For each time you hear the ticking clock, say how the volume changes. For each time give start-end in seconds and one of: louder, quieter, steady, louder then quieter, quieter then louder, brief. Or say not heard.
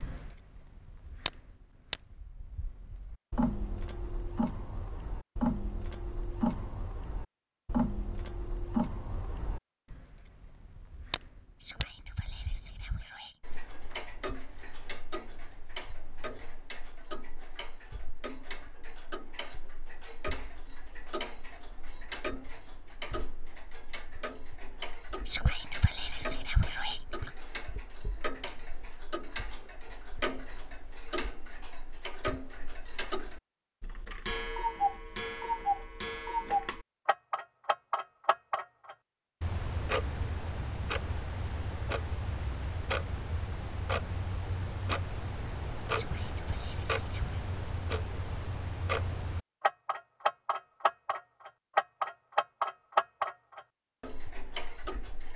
0.0-55.3 quieter then louder.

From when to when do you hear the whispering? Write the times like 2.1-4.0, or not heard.
11.6-13.3, 25.2-27.3, 45.9-47.4.